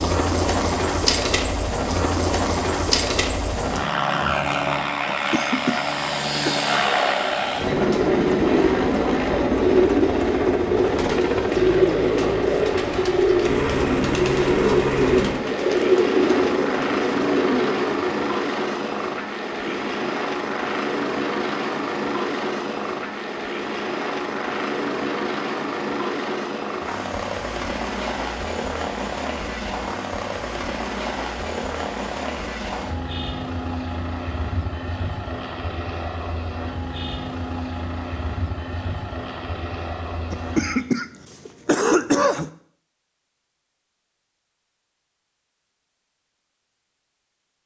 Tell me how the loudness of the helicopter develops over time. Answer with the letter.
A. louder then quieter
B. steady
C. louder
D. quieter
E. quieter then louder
D.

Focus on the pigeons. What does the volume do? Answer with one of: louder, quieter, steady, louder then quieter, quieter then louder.
steady.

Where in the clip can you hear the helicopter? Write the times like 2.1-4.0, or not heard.
0.0-40.9.